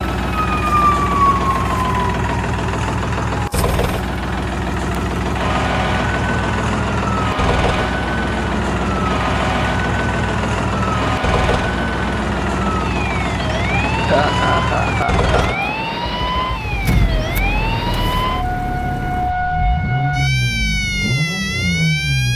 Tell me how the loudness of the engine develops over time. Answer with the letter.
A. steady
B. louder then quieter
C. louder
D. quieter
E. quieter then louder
A.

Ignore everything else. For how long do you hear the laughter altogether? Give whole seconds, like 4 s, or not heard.
2 s.